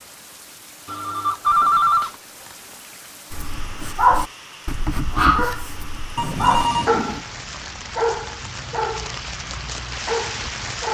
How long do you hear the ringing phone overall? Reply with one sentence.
The ringing phone can be heard for 2 seconds in total.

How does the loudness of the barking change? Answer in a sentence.
The volume of the barking goes down.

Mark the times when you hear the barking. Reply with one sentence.
The barking can be heard from 3.3 to 10.8 s.